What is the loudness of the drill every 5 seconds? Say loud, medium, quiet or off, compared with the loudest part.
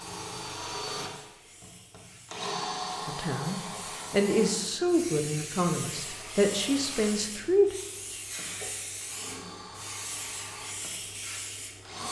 loud, medium, medium.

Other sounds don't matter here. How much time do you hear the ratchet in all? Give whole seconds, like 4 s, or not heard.
not heard.